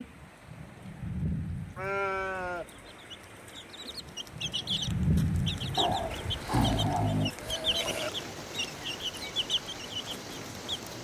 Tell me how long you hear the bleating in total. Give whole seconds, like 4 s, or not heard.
3 s.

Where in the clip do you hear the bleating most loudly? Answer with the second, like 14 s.
2 s.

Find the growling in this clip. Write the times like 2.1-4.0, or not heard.
5.8-7.3.